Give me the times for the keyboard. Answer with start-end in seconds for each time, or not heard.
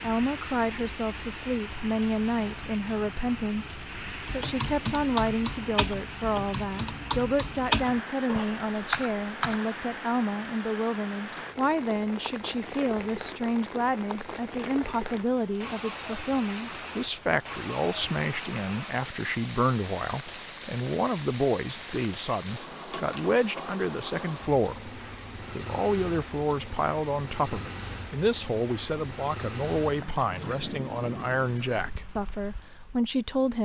4.2-9.6.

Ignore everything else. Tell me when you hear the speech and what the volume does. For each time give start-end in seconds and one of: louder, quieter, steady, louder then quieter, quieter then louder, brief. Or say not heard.
0.0-33.5 steady.